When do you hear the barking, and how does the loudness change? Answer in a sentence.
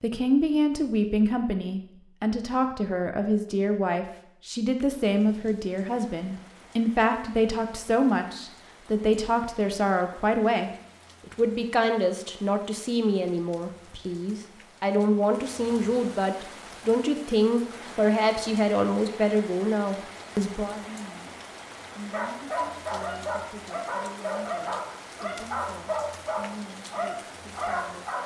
The barking can be heard from 22.1 to 28.2 s, at a steady volume.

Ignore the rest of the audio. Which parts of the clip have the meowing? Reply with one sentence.
You can't hear the meowing here.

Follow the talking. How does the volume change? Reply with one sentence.
The volume of the talking goes down.